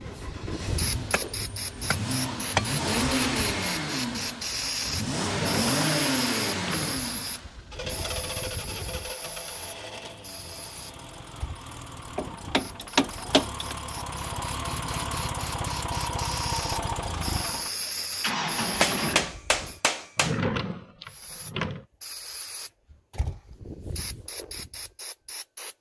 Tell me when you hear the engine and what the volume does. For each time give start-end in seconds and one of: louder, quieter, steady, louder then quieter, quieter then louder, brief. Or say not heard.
0.0-19.4 quieter then louder.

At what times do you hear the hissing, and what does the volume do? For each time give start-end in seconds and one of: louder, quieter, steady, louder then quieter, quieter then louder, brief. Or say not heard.
0.0-19.8 quieter then louder
21.1-25.7 steady.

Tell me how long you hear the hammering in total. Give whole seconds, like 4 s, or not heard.
5 s.